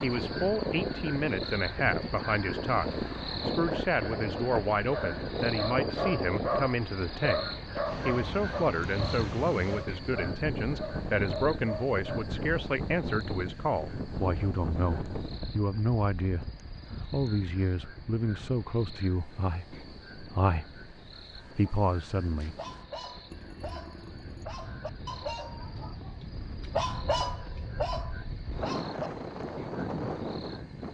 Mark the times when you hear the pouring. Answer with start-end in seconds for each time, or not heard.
23.3-24.4.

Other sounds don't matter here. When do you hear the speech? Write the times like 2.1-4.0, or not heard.
0.0-16.5, 17.1-22.6.